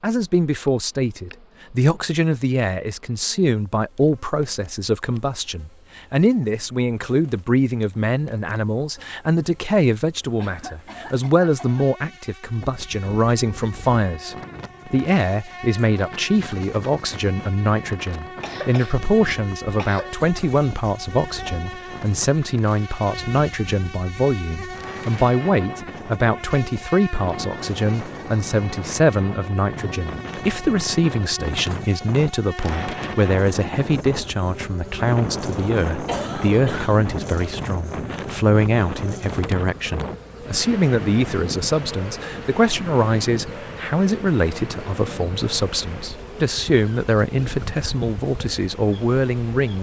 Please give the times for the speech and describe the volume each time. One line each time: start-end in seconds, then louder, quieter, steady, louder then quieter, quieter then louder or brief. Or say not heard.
0.0-49.7 steady.